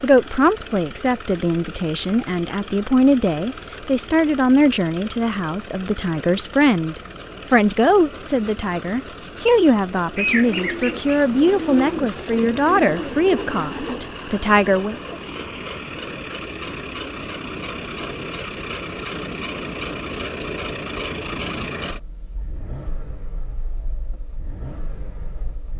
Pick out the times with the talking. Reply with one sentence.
You can hear the talking from 0.0 to 15.2 s.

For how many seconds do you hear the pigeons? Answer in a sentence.
You can hear the pigeons for 4 seconds altogether.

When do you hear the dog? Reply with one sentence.
You can't hear the dog here.